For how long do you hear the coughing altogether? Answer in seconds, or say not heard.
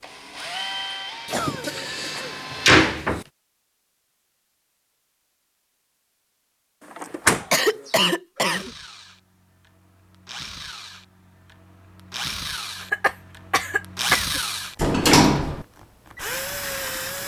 4 s.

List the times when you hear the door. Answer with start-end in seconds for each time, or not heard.
1.2-3.2, 7.0-7.5, 14.8-15.7.